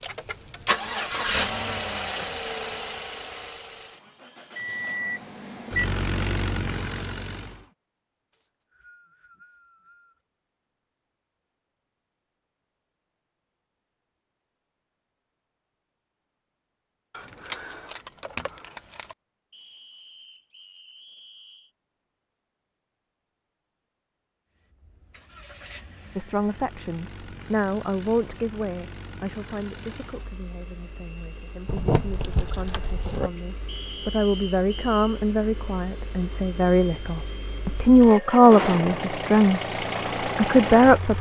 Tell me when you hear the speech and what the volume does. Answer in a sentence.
You can hear the speech from 26.1 to 39.6 s, getting quieter then louder; and briefly from 40.4 to 41.1 s.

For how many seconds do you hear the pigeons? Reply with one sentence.
The pigeons can't be heard in this clip.